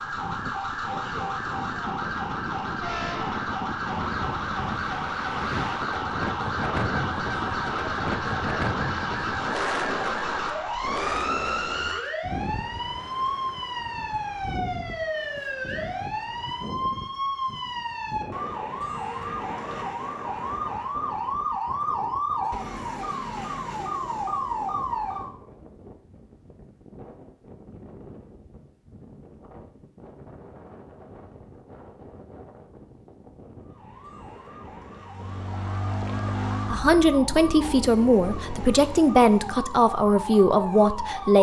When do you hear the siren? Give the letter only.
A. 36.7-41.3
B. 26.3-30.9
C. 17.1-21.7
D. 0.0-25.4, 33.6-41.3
D.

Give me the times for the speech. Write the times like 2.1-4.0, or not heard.
36.7-41.3.